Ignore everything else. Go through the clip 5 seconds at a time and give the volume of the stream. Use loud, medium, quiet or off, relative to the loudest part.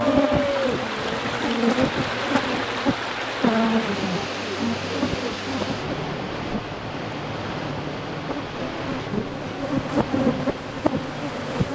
loud, loud, medium.